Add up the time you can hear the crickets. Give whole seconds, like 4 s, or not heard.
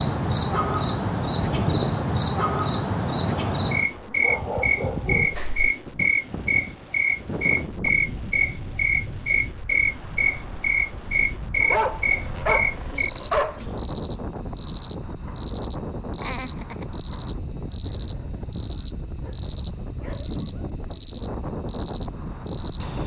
23 s.